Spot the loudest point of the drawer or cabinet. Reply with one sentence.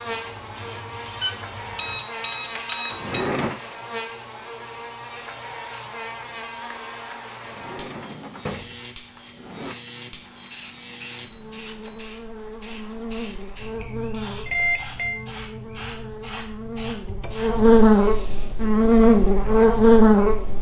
The loudest moment of the drawer or cabinet is at 3 seconds.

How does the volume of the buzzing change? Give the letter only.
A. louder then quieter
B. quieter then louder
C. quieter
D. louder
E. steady
D.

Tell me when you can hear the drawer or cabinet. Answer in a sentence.
The drawer or cabinet can be heard from 2.9 to 3.6 s, from 7.4 to 9.8 s and from 17.1 to 17.5 s.